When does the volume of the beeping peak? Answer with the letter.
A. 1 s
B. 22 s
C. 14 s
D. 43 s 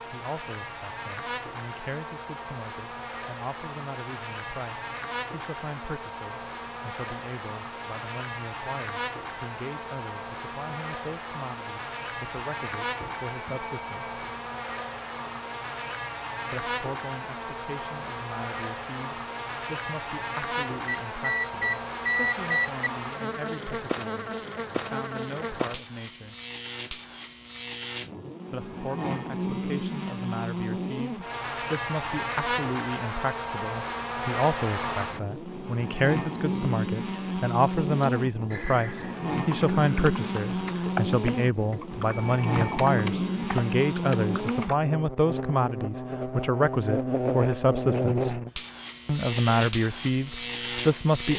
B.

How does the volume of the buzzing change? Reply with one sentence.
The loudness of the buzzing goes up.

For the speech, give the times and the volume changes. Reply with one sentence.
You can hear the speech from 0.1 to 14.2 s, at a steady volume; from 16.5 to 26.4 s, at a steady volume; from 28.5 to 48.4 s, getting louder; and briefly from 49.0 to 51.3 s.